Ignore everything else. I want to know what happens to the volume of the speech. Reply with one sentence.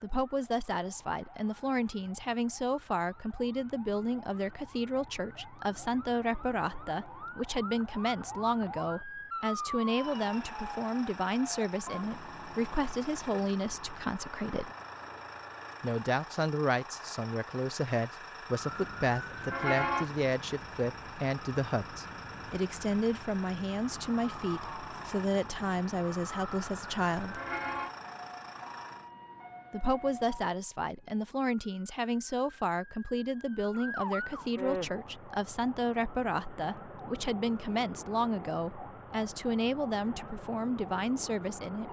The loudness of the speech stays about the same.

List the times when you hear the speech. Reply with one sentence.
You can hear the speech from 0.0 to 14.7 s, from 15.8 to 27.4 s and from 29.7 to 41.8 s.